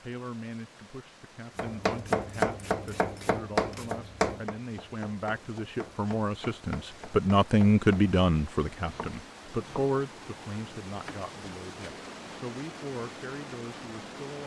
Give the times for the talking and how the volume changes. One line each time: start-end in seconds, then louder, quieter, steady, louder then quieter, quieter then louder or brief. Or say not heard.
0.0-14.4 louder then quieter.